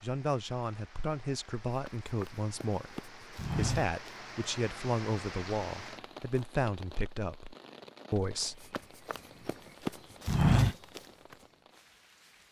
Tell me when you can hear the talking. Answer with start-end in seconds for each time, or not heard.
0.0-8.7.